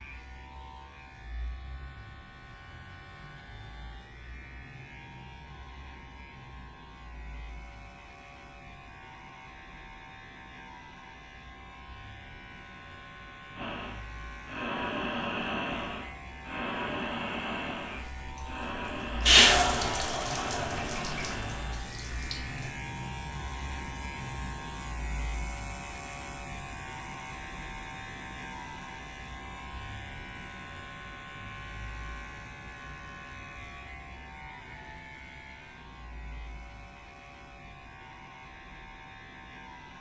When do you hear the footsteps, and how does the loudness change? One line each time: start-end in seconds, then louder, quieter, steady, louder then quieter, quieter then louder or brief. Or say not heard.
not heard.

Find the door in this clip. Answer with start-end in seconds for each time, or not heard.
not heard.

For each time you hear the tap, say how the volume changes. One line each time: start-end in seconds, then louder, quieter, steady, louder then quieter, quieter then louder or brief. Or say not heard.
18.2-22.7 quieter.